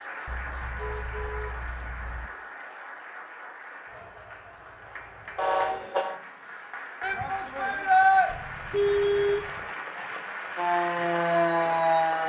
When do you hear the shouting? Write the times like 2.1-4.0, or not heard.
7.0-8.3.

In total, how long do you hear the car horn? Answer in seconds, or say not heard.
4 s.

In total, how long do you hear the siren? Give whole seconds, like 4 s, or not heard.
2 s.